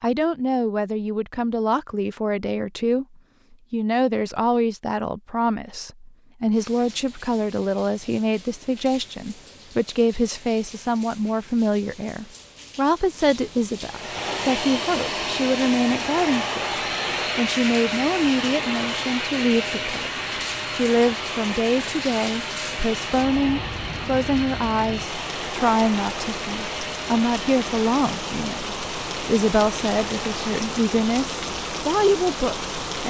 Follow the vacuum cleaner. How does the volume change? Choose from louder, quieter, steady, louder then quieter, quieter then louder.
quieter.